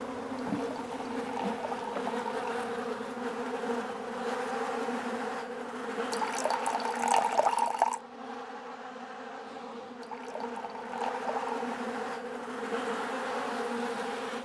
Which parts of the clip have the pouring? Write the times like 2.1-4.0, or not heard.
0.6-2.6, 6.1-8.0, 10.0-11.7.